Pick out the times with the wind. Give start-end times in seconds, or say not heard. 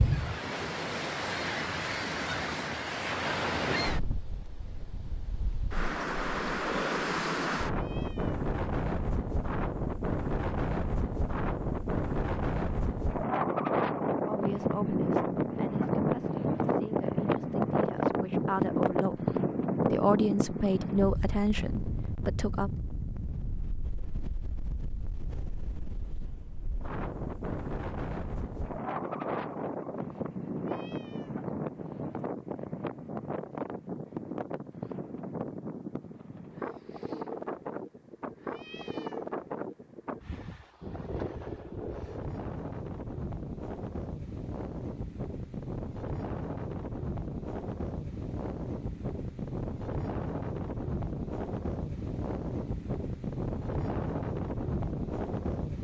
0.0-55.8.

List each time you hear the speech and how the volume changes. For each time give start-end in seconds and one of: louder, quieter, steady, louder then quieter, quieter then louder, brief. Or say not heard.
14.2-22.7 quieter then louder.